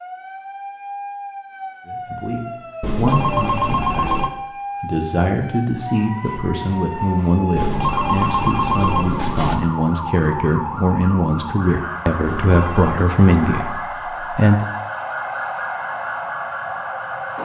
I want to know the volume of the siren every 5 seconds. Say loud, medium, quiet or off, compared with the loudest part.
medium, loud, loud, loud.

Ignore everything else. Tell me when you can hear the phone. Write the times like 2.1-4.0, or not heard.
2.8-4.3, 7.5-9.6, 12.2-13.1.